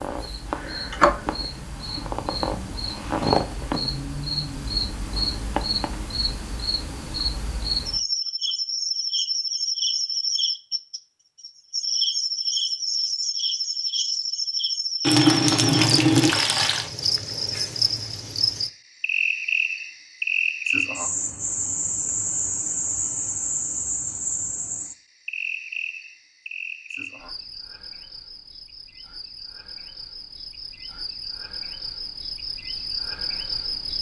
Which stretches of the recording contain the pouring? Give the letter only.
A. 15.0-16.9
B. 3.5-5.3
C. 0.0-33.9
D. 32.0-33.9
A.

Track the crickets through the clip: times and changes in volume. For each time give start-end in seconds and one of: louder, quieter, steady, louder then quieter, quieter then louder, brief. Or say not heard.
0.0-33.9 quieter.